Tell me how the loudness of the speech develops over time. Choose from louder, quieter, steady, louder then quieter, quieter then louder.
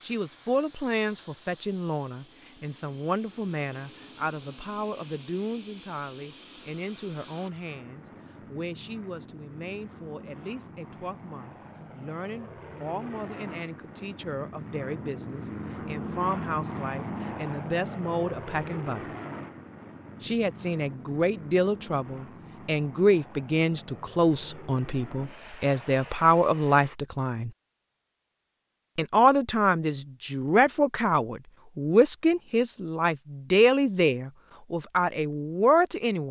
quieter then louder.